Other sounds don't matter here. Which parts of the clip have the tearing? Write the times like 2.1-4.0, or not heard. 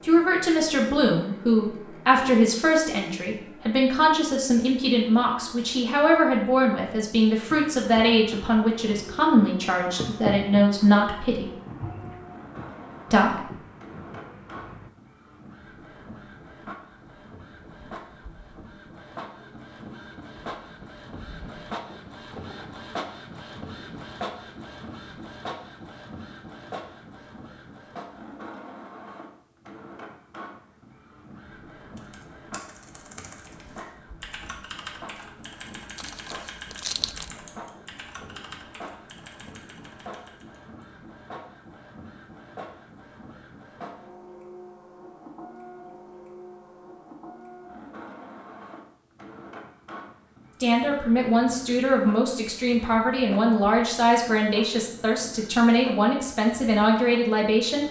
36.0-37.3.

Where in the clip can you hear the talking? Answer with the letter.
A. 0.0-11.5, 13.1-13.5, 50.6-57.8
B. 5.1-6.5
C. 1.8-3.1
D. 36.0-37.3
A.